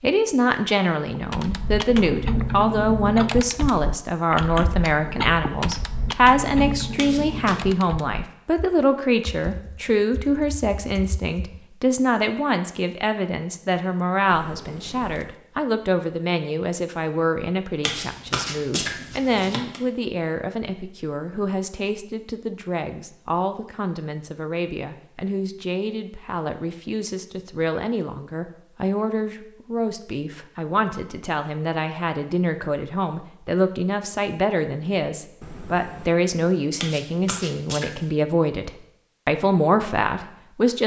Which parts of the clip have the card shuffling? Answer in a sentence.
You can hear the card shuffling from 7.0 to 7.5 s, from 17.8 to 19.8 s and from 36.8 to 38.1 s.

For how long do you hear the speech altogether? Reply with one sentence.
The speech can be heard for 41 seconds in total.